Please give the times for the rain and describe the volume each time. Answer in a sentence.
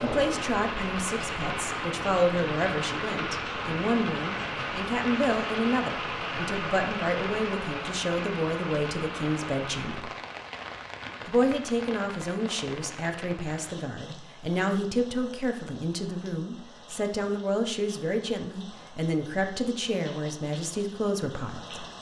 You can hear the rain from 0.0 to 21.9 s, getting quieter.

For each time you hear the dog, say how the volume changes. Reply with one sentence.
You can't hear the dog here.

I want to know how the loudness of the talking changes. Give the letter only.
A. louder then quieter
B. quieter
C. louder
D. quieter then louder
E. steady
E.